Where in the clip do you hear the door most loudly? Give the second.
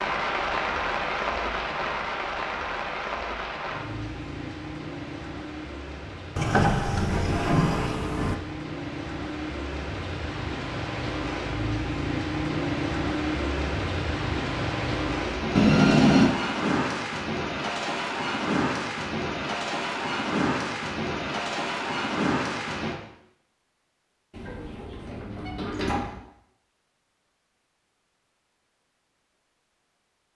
16 s.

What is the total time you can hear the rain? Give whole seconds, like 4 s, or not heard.
23 s.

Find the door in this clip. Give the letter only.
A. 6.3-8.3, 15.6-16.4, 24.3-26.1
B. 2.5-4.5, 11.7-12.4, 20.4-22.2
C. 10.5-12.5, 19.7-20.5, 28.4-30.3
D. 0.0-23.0
A.